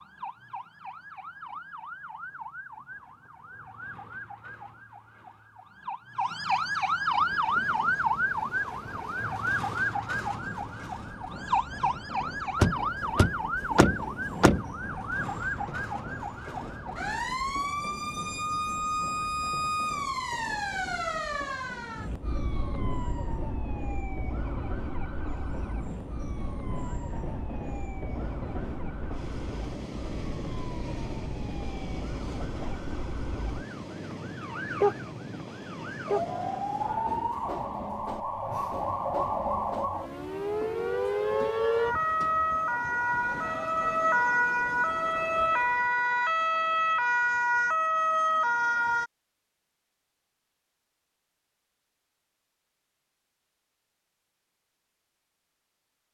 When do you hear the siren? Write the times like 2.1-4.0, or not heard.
0.0-49.1.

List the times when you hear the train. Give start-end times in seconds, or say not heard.
7.0-43.6.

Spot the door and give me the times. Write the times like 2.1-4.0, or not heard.
12.6-14.7.